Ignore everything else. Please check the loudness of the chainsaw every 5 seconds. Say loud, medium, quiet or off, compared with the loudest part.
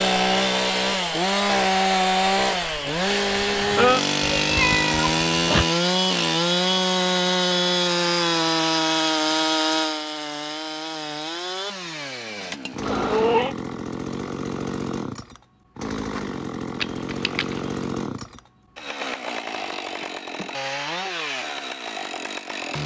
loud, loud, medium, medium, medium.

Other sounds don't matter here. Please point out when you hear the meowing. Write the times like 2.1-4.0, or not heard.
4.3-5.7, 12.8-13.6, 16.8-17.7.